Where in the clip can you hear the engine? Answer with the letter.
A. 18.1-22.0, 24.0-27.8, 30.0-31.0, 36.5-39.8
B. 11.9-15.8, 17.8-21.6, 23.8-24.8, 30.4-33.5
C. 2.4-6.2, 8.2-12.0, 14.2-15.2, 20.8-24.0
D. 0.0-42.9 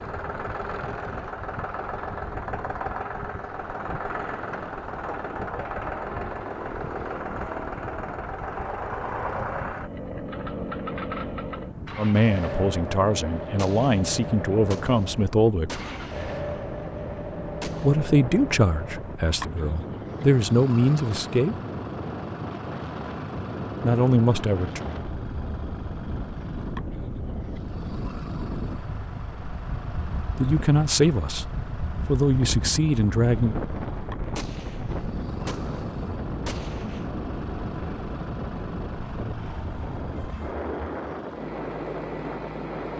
D.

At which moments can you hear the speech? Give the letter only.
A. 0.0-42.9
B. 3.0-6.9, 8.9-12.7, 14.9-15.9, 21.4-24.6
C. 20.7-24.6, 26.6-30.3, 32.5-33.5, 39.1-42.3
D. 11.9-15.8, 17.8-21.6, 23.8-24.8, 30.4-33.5
D.